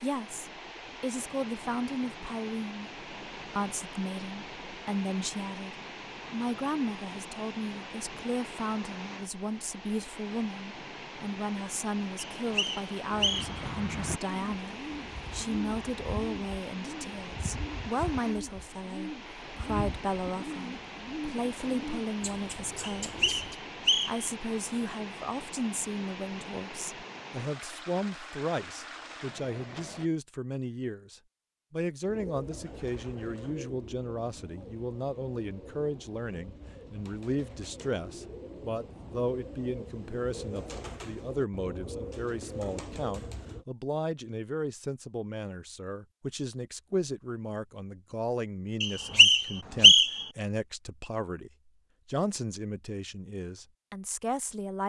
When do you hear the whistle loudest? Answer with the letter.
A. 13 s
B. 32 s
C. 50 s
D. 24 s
C.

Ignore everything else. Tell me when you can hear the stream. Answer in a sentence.
You can hear the stream from 0.0 to 30.1 s.